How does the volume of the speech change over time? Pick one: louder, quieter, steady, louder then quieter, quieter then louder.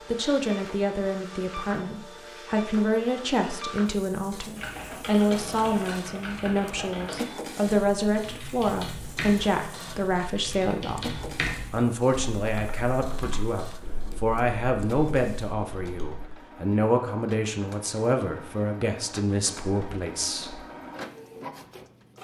steady.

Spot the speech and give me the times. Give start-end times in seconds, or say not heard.
0.1-11.1, 11.7-20.6.